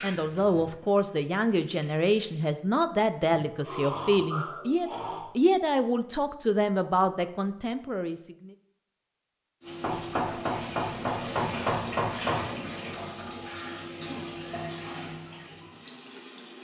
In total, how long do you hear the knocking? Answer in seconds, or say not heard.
3 s.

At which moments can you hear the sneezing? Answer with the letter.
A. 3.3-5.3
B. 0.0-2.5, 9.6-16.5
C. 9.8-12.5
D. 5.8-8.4
A.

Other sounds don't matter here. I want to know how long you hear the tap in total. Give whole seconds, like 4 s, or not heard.
9 s.